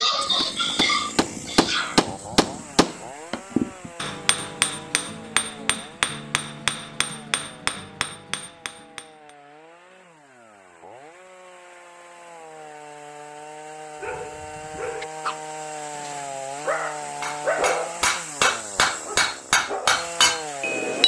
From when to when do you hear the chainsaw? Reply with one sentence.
You can hear the chainsaw from 0.0 to 21.0 s.